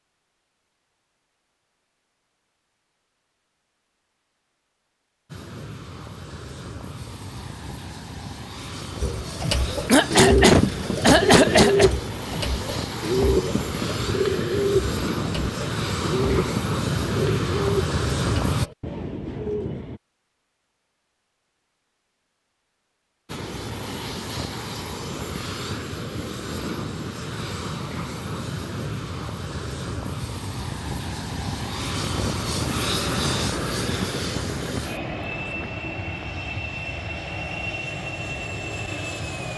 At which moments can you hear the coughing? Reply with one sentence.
You can hear the coughing from 9.8 to 11.9 s.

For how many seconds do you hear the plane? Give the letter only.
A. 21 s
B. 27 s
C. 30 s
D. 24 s
C.